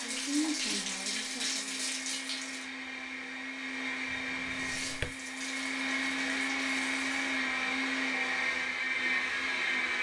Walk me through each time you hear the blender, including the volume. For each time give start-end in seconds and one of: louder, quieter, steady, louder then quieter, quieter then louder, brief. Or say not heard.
0.0-9.9 louder.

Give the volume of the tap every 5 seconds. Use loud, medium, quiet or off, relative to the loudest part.
loud, medium.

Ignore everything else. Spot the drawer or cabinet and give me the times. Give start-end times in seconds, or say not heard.
4.0-5.2.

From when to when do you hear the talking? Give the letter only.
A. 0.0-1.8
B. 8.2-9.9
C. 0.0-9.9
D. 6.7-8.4
A.